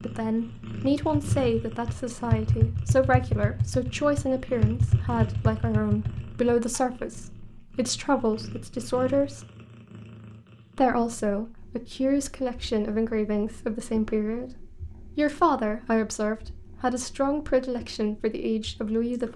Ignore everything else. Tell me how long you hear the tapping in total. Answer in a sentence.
The tapping can be heard for 6 seconds in total.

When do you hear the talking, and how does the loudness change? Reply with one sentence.
The talking can be heard from 0.0 to 9.4 s, at a steady volume; and from 10.8 to 19.3 s, at a steady volume.